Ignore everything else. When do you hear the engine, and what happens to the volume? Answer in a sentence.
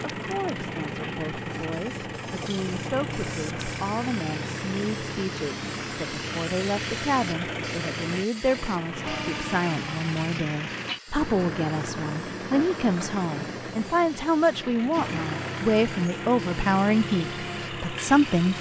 The engine can be heard from 0.0 to 18.5 s, at a steady volume.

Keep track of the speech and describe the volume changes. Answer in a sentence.
The volume of the speech goes up.